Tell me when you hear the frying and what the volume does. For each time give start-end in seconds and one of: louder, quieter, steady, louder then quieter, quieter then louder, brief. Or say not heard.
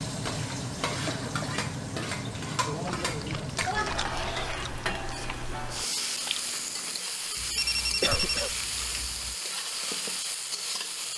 0.0-11.1 steady.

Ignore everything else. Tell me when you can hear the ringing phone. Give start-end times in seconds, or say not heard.
7.5-8.6.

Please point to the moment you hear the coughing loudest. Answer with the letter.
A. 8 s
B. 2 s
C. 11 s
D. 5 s
A.